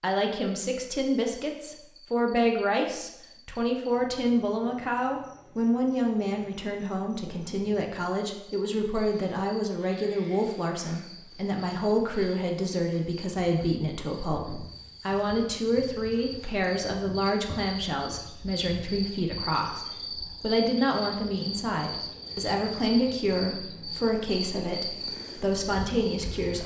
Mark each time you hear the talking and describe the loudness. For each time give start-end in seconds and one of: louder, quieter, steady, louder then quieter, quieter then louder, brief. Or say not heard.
0.0-26.6 steady.